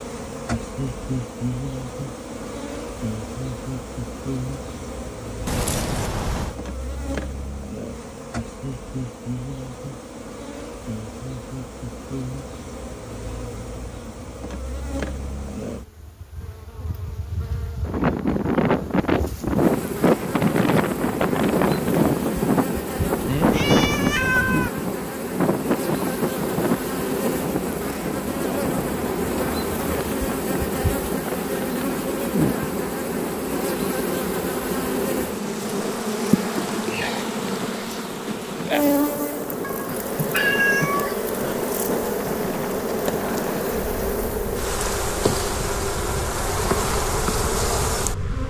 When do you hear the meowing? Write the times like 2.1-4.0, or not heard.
5.5-6.5, 23.2-24.7, 39.6-41.6.